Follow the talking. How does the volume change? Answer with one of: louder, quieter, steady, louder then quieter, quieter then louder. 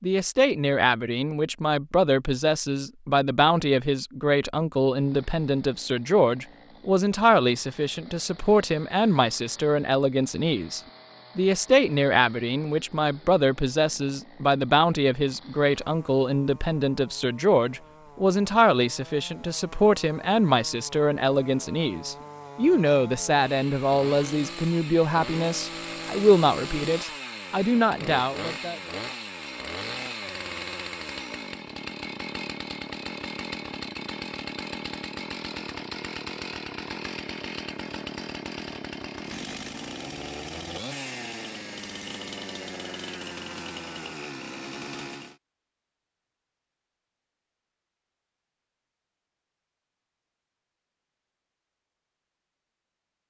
steady.